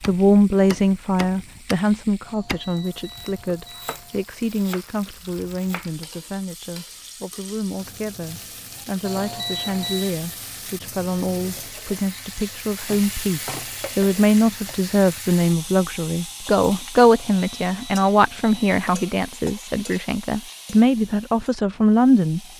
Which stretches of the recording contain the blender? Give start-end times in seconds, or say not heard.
not heard.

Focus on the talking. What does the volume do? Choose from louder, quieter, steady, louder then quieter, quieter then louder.
quieter then louder.